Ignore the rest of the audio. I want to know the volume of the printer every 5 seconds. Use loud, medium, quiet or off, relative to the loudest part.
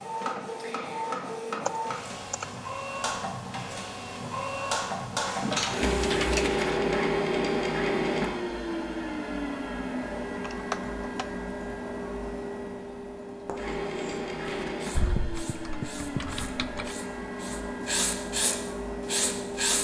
medium, loud, medium, medium.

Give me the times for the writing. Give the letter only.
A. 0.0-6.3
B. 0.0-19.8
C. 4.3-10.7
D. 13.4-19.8
D.